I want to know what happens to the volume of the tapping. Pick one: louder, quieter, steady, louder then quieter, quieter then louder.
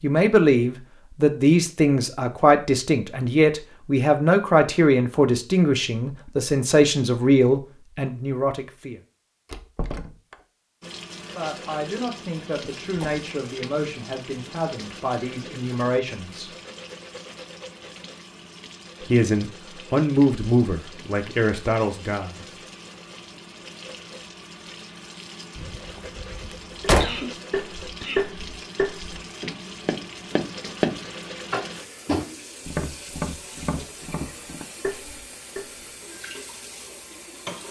quieter.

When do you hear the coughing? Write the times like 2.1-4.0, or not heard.
27.0-28.3.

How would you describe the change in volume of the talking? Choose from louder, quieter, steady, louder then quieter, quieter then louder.
quieter then louder.